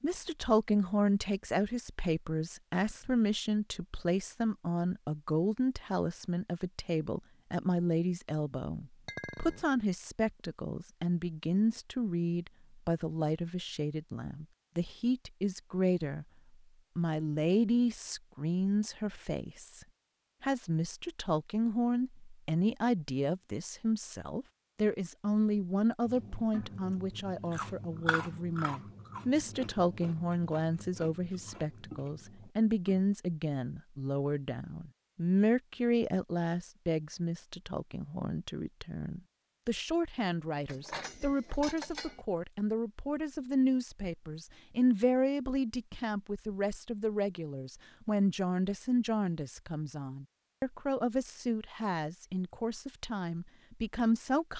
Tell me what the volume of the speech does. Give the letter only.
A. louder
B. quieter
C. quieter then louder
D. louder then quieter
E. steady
E.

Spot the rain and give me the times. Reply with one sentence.
The rain can't be heard in this clip.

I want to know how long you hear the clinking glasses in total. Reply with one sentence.
The clinking glasses can be heard for 2 seconds in total.